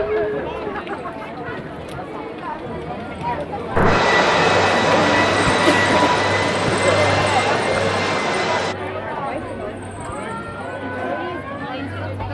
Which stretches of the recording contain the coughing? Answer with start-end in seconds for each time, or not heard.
not heard.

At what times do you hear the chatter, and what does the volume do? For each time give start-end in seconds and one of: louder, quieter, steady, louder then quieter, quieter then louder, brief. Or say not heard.
0.0-12.2 louder then quieter.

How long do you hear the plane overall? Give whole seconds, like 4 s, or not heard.
5 s.